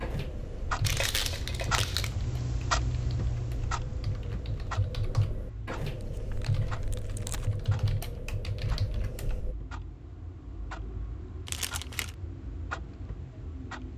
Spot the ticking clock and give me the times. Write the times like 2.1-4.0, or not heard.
0.1-13.9.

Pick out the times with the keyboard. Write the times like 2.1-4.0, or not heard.
0.0-9.6.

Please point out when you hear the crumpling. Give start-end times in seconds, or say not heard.
0.8-2.1, 6.0-7.5, 11.4-12.1.